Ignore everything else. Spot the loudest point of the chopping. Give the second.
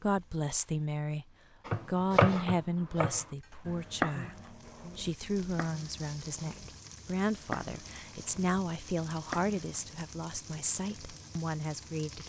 2 s.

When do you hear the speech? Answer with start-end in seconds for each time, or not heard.
0.0-1.2, 1.9-12.2.